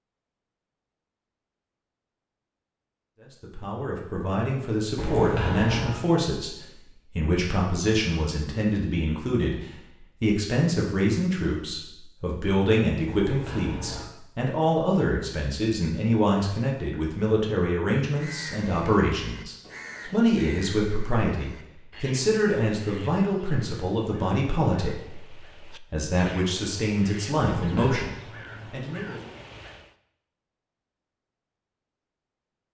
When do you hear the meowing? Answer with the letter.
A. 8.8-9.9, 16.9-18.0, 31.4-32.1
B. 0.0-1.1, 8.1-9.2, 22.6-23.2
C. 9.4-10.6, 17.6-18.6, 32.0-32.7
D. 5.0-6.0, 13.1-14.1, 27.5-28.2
D.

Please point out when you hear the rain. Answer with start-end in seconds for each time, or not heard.
not heard.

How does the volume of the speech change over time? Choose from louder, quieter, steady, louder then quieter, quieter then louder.
steady.